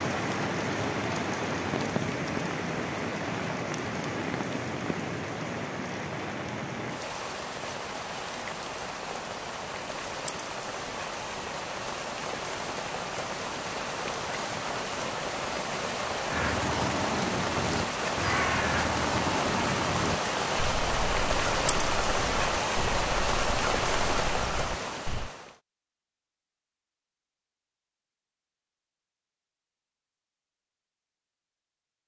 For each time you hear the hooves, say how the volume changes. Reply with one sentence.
You can't hear the hooves here.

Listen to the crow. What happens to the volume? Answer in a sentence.
The volume of the crow goes down.